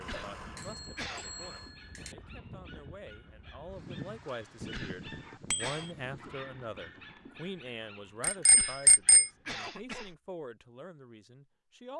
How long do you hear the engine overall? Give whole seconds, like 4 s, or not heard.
2 s.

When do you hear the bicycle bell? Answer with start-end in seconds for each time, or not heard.
0.3-2.1, 5.5-5.9, 8.2-9.3.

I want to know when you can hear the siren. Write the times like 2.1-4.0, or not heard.
not heard.